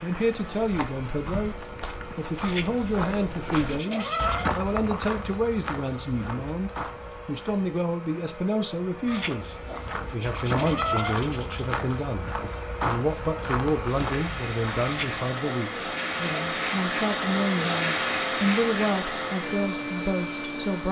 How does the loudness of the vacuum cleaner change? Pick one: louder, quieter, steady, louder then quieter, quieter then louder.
louder.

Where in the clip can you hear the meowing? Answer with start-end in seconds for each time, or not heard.
2.4-4.5, 9.1-11.7, 14.8-16.5.